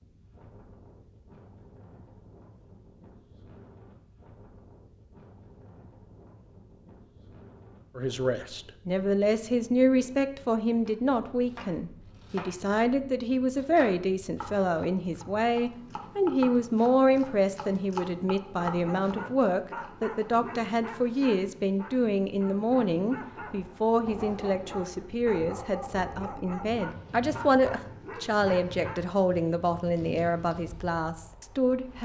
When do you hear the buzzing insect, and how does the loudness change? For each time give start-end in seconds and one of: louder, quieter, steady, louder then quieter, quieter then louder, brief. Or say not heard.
not heard.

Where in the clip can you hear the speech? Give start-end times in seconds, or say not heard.
8.0-32.0.